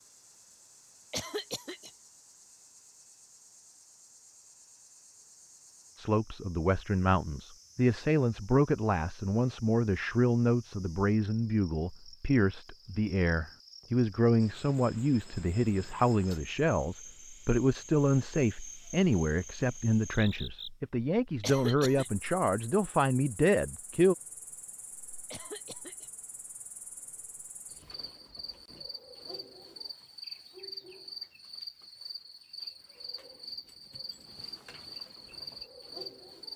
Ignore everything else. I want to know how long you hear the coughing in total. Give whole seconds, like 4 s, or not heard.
2 s.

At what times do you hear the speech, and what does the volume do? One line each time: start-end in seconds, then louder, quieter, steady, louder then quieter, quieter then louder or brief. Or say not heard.
6.0-24.1 steady.